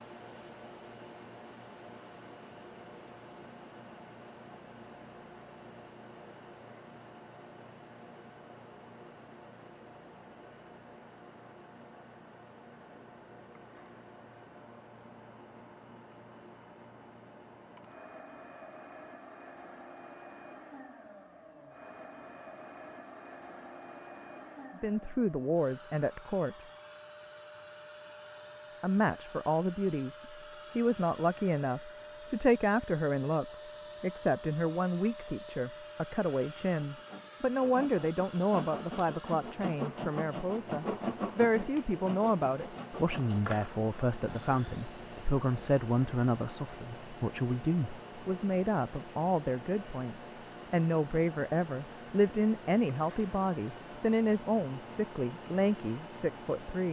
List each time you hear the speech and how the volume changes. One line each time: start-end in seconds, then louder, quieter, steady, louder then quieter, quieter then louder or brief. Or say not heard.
24.8-26.6 brief
28.8-56.8 steady.